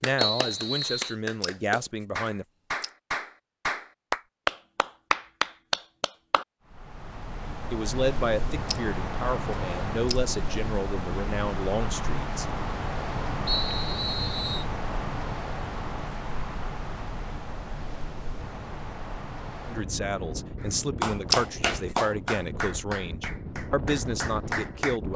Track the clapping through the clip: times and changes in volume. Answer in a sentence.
You can hear the clapping from 0.0 to 6.5 s, getting louder; and from 20.6 to 25.0 s, getting quieter then louder.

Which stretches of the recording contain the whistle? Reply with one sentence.
You can hear the whistle from 0.1 to 1.1 s and from 13.4 to 14.7 s.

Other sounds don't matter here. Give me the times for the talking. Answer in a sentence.
You can hear the talking from 0.0 to 2.5 s, from 7.7 to 12.4 s and from 19.6 to 25.1 s.